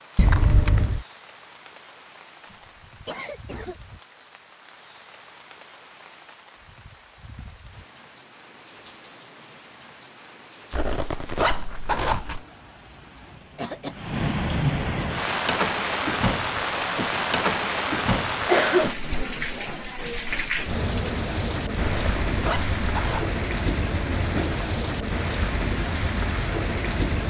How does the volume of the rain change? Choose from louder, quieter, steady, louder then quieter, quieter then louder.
louder.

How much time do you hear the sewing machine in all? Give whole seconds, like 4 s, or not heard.
not heard.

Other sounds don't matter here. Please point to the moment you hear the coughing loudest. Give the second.
19 s.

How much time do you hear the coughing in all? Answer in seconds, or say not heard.
3 s.